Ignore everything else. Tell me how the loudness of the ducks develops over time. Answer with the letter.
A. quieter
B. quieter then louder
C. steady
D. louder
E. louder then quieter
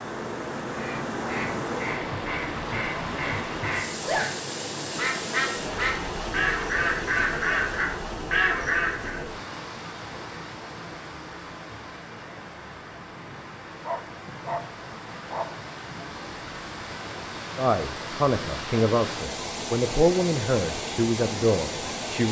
D.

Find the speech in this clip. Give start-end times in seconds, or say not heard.
17.6-22.2.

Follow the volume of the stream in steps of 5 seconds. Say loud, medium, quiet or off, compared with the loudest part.
loud, loud, medium, loud, loud.